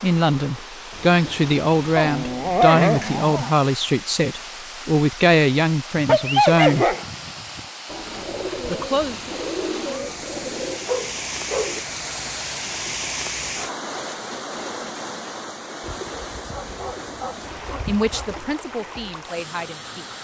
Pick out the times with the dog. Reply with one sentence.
The dog can be heard from 1.9 to 3.5 s, from 6.0 to 7.6 s, from 10.8 to 11.8 s and from 16.5 to 18.2 s.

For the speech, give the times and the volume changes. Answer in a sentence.
The speech can be heard from 0.0 to 7.0 s, at a steady volume; briefly from 8.7 to 9.2 s; and briefly from 17.9 to 20.1 s.